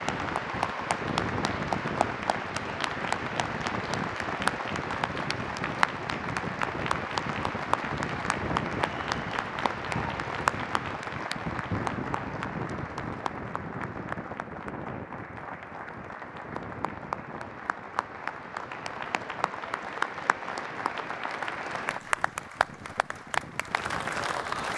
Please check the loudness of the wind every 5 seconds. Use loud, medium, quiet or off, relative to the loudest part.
loud, loud, loud, medium, medium.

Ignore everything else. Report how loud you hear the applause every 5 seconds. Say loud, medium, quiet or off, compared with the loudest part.
loud, loud, loud, medium, loud.